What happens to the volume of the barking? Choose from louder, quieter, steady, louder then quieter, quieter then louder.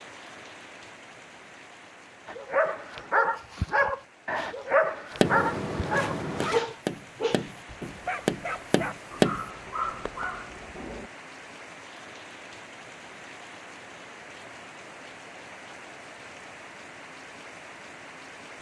quieter.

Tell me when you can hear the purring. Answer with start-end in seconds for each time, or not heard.
not heard.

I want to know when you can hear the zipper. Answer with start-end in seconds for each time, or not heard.
5.2-6.7.